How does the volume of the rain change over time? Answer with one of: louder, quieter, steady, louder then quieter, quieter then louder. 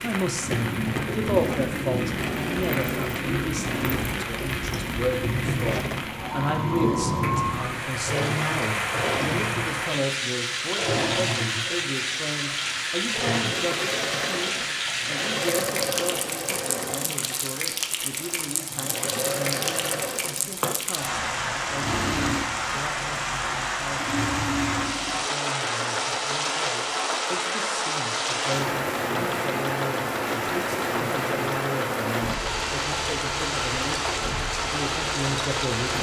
steady.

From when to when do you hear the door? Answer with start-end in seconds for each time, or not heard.
not heard.